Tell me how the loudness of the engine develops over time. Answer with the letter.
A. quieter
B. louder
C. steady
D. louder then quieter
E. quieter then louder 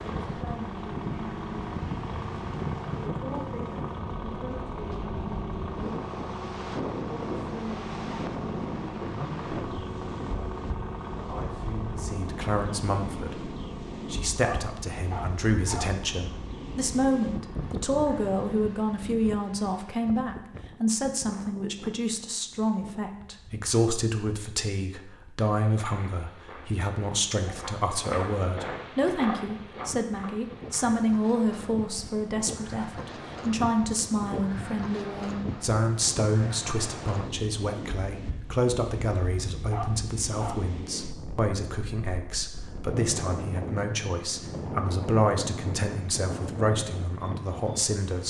A.